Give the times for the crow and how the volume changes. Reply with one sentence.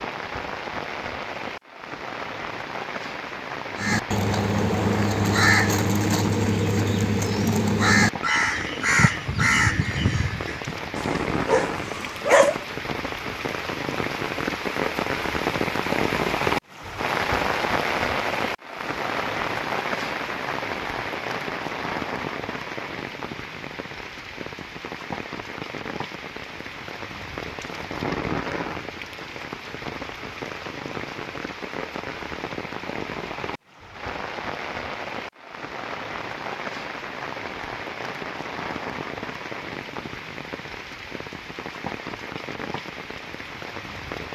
The crow can be heard from 3.8 to 10.8 s, at a steady volume.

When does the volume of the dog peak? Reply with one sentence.
The volume of the dog peaks at 12 seconds.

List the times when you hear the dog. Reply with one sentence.
You can hear the dog from 10.9 to 12.7 s.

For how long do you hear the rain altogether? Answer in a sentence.
You can hear the rain for 44 seconds altogether.